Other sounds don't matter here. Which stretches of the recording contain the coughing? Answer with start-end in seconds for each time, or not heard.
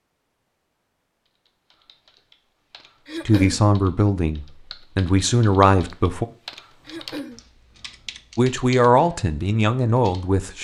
3.0-3.6, 6.8-7.4.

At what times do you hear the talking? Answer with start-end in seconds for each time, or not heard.
3.2-6.2, 8.3-10.6.